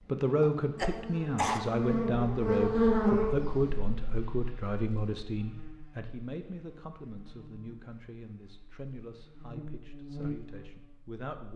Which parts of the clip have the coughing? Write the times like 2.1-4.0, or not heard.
0.4-1.6.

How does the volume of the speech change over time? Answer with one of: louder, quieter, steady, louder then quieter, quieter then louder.
quieter.